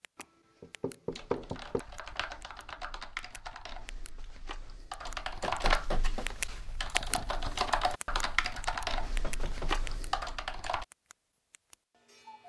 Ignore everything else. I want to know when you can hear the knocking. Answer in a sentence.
The knocking can be heard from 0.1 to 1.8 s, from 5.4 to 6.3 s and from 9.2 to 10.2 s.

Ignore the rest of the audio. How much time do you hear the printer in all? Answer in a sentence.
The printer can't be heard in this clip.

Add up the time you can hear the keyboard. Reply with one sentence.
The keyboard can be heard for 10 seconds in total.